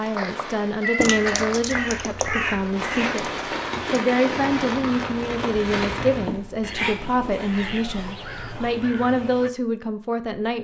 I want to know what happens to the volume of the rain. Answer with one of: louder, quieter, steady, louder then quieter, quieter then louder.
louder.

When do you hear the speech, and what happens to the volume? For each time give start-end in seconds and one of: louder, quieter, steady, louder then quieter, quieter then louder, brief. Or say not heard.
0.0-10.5 steady.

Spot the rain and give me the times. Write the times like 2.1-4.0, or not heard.
0.0-6.4.